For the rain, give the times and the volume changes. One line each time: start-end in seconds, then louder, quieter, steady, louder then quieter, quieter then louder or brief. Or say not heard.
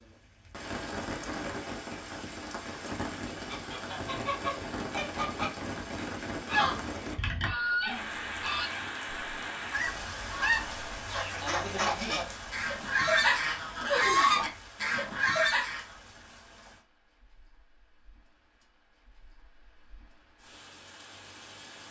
0.0-21.8 quieter.